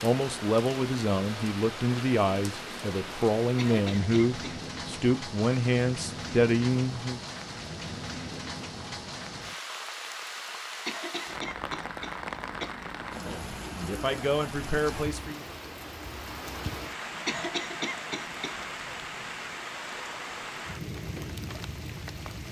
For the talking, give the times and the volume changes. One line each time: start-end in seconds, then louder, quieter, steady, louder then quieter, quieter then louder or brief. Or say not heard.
0.0-7.2 steady
13.2-15.4 brief.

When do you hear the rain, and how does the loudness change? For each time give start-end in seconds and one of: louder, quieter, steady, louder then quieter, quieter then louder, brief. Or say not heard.
0.0-22.4 steady.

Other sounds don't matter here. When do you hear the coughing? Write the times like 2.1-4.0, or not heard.
3.5-4.6, 10.8-12.7, 17.2-18.6.